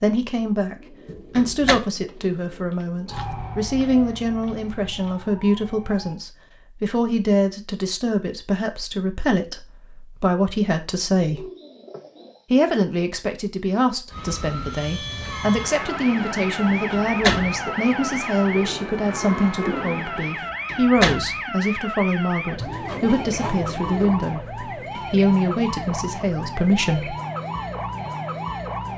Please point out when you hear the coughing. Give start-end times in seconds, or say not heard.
not heard.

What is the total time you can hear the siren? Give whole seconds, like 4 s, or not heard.
18 s.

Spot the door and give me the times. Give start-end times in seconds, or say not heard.
1.1-1.8, 16.9-17.6, 20.4-21.4.